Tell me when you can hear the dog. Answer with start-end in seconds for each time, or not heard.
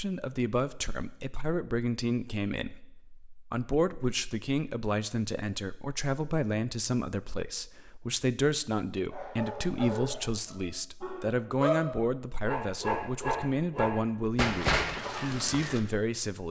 9.1-15.8.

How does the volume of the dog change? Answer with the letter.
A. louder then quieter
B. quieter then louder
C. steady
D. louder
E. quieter
D.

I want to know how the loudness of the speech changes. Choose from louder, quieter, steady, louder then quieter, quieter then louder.
steady.